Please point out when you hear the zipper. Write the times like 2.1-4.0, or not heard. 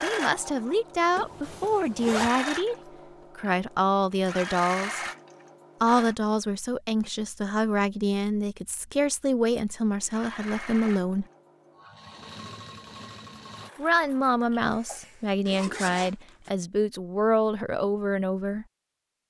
1.1-2.3, 14.6-16.5.